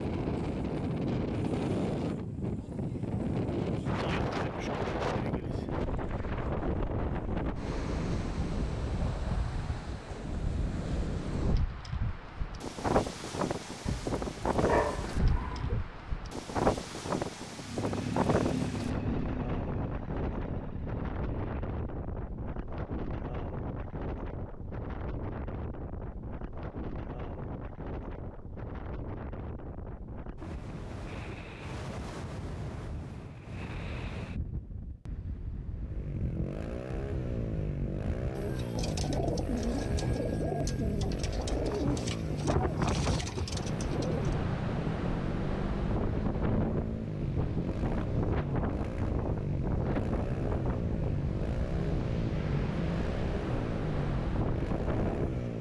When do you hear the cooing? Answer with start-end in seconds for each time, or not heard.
38.4-44.4.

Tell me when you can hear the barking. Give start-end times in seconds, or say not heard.
13.8-15.8.